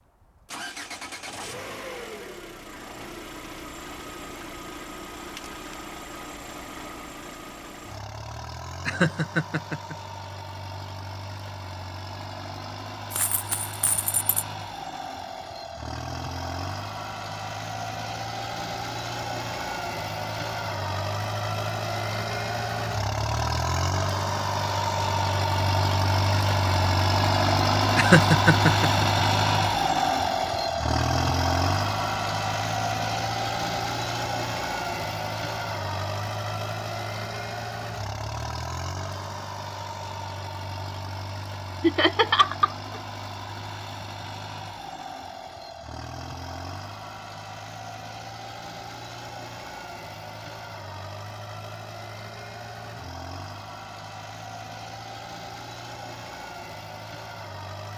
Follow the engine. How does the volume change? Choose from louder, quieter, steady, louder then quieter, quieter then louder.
louder then quieter.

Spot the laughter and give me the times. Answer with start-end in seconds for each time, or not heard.
8.8-9.9, 27.9-29.1, 41.8-42.8.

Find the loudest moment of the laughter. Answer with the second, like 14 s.
28 s.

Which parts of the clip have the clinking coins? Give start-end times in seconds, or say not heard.
13.1-14.3.